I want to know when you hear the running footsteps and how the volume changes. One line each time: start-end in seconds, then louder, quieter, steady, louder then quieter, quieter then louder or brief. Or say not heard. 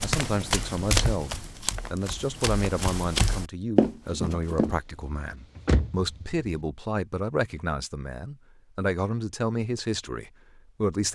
0.0-4.8 quieter then louder.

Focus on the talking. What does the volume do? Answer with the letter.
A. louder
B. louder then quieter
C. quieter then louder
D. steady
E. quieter
D.